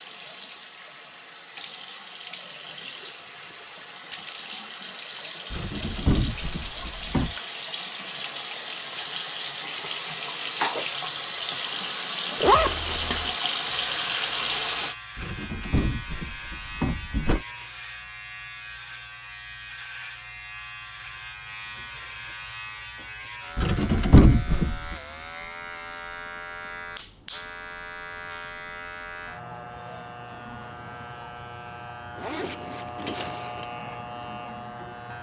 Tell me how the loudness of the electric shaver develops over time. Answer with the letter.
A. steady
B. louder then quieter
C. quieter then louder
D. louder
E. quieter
A.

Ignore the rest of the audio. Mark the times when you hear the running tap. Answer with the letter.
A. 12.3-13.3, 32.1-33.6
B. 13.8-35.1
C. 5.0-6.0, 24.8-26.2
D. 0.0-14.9
D.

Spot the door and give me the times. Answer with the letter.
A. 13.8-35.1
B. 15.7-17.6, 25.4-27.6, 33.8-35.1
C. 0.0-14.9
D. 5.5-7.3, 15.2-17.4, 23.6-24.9
D.